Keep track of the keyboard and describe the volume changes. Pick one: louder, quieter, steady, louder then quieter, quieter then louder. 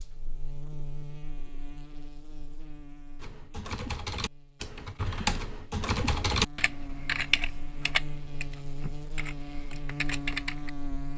louder then quieter.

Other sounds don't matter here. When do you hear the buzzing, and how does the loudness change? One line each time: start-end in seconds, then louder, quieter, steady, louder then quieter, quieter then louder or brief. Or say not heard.
0.0-11.1 quieter then louder.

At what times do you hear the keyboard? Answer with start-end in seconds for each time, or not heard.
3.1-10.7.